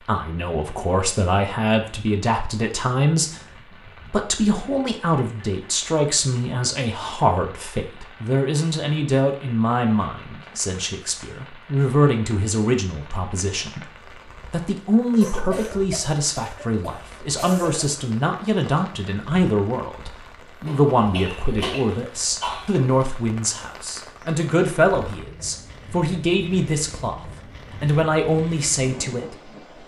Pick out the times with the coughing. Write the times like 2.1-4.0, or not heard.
5.2-5.7, 15.2-17.9, 20.6-22.9.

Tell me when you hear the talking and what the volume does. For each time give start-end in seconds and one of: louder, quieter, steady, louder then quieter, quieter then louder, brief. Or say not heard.
0.0-29.6 steady.